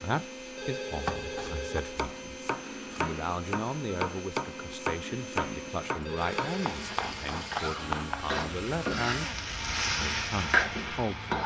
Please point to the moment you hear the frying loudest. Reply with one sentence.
The loudest moment of the frying is at 10 seconds.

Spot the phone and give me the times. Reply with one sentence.
The phone can be heard from 0.6 to 2.0 s and from 6.0 to 6.8 s.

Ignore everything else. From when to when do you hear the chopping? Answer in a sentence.
The chopping can be heard from 0.9 to 8.2 s.